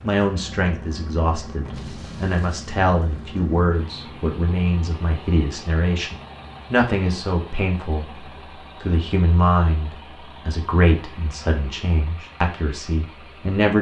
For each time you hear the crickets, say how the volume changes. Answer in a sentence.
The crickets can't be heard in this clip.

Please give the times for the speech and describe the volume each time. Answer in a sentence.
You can hear the speech from 0.0 to 13.7 s, at a steady volume.